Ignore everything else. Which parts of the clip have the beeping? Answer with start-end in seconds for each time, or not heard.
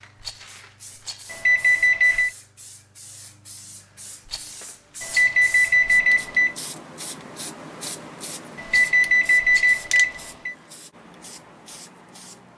1.3-2.3, 5.0-6.5, 8.6-10.6.